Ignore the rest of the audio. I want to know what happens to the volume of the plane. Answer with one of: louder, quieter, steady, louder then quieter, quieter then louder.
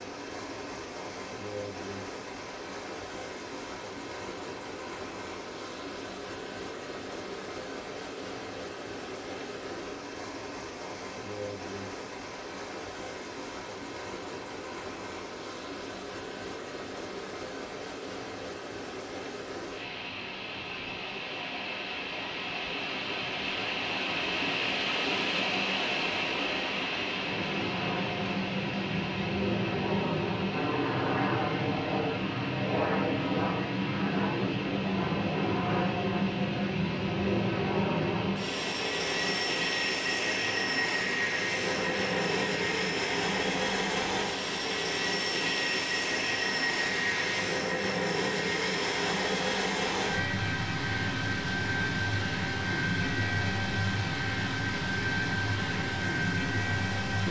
steady.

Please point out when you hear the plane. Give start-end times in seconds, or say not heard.
27.1-57.2.